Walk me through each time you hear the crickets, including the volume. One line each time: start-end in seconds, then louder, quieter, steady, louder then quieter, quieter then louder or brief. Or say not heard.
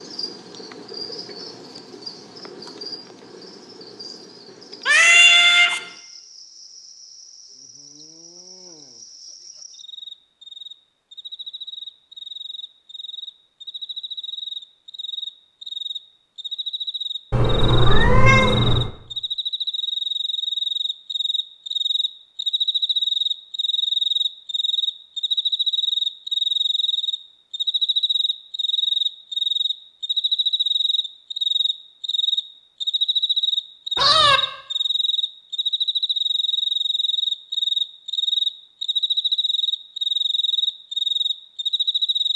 0.0-42.3 louder.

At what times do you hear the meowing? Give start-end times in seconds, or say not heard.
4.8-5.8, 17.3-18.9, 34.0-34.4.